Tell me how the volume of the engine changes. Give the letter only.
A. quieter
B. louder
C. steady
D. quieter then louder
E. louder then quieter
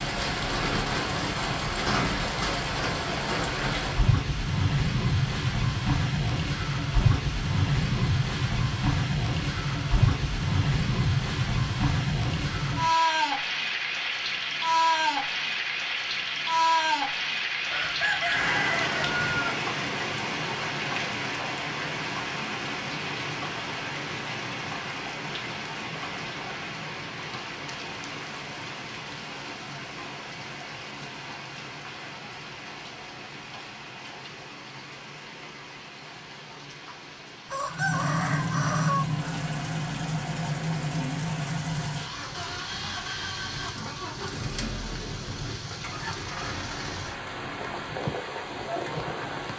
A.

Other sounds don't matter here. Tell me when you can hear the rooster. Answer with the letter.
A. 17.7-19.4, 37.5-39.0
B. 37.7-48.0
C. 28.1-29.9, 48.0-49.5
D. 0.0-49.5
A.